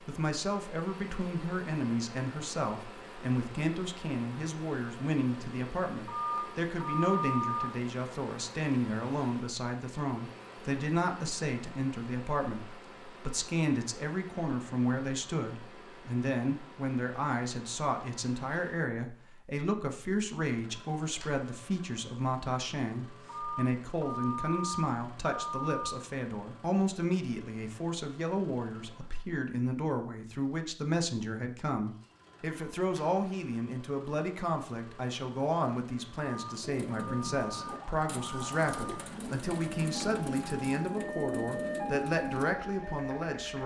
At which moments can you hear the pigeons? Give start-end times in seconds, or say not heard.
36.6-42.5.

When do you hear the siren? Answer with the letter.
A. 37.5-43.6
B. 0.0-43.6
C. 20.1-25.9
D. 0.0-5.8
A.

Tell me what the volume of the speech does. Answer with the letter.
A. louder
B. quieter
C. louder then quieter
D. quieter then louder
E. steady
E.